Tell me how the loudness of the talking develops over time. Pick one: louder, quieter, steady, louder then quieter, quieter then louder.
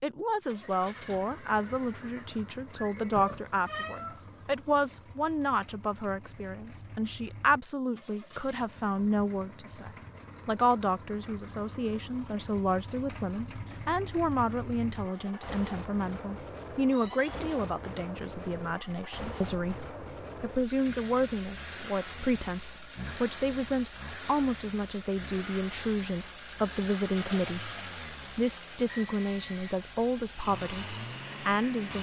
steady.